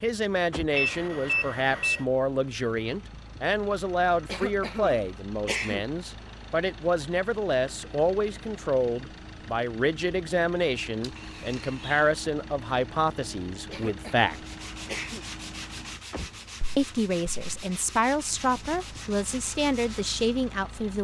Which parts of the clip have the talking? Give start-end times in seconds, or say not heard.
0.0-14.3, 16.8-20.9.